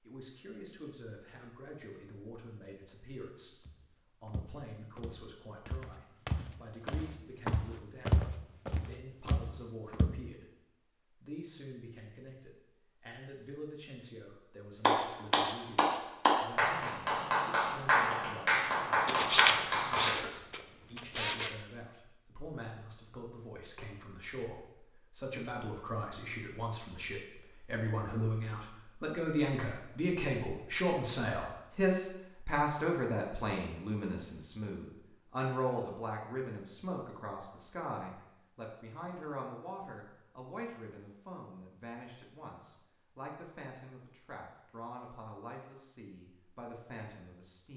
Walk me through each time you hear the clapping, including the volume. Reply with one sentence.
The clapping can be heard from 14.8 to 20.3 s, at a steady volume.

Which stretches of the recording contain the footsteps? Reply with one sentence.
The footsteps can be heard from 3.6 to 10.1 s.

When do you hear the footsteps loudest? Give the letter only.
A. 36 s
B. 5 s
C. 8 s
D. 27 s
C.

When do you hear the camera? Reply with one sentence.
You can hear the camera from 19.1 to 21.5 s.